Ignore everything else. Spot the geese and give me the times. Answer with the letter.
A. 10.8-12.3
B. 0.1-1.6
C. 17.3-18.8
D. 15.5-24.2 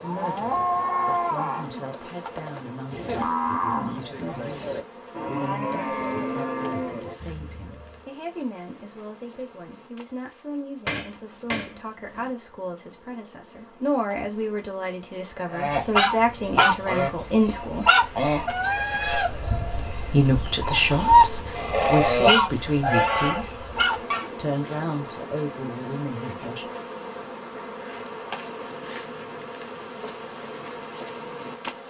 D.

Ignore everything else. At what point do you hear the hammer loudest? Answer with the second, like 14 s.
11 s.